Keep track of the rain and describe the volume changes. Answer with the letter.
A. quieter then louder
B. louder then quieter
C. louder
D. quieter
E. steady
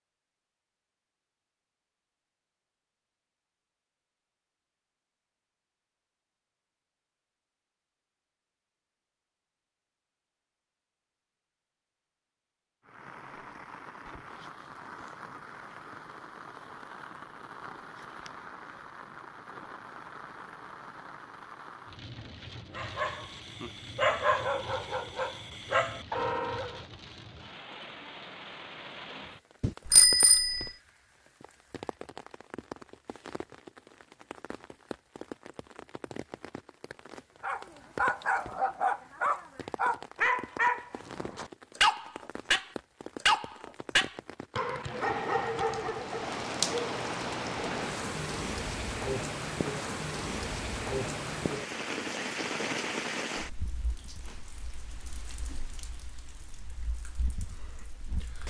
C.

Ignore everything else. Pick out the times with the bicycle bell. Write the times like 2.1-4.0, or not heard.
29.6-30.7.